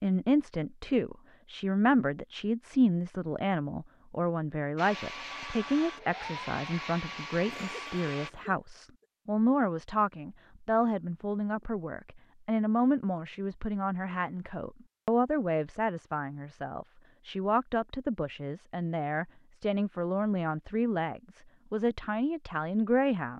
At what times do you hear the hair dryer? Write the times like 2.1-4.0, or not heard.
4.8-8.3.